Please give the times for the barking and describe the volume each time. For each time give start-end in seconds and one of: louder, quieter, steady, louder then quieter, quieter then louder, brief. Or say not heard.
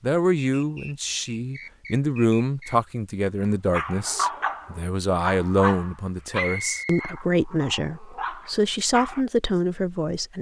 3.7-9.2 quieter then louder.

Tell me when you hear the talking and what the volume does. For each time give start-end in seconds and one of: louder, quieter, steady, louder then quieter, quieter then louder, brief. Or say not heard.
0.0-10.3 steady.